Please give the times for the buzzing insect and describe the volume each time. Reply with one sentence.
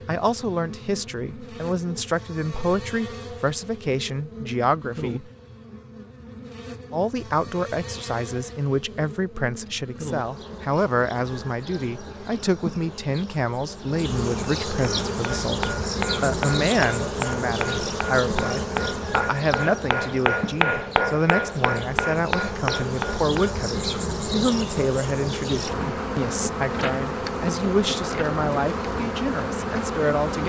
You can hear the buzzing insect from 0.0 to 30.4 s, getting louder.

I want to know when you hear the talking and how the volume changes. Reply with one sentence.
You can hear the talking from 0.1 to 5.3 s, at a steady volume; and from 6.9 to 30.4 s, at a steady volume.